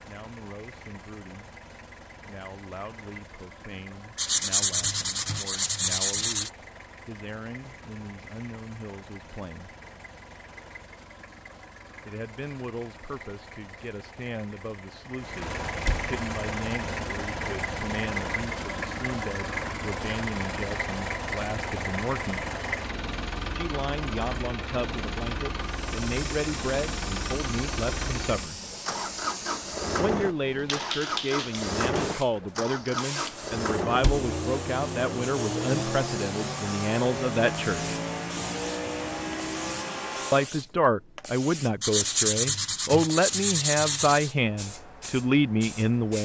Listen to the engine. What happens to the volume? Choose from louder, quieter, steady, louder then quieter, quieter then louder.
louder.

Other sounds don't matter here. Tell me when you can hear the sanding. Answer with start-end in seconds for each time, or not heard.
4.2-6.5, 41.8-44.3.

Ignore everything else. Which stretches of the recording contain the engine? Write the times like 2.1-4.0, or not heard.
0.0-40.5.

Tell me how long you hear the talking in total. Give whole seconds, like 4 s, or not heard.
38 s.